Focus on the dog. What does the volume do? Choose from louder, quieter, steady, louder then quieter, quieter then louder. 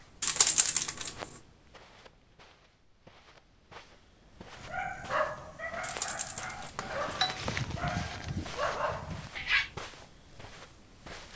quieter then louder.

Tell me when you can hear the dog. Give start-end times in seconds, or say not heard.
4.5-9.8.